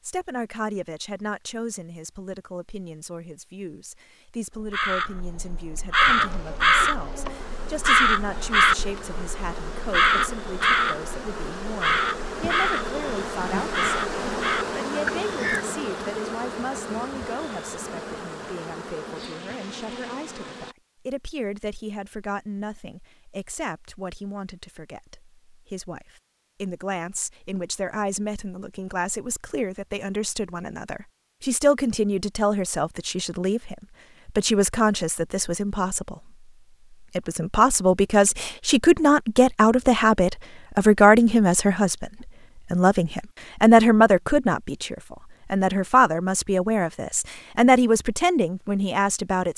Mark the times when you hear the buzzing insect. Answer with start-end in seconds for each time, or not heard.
6.0-20.8.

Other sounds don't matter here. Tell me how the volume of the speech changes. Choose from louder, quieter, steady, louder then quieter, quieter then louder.
louder.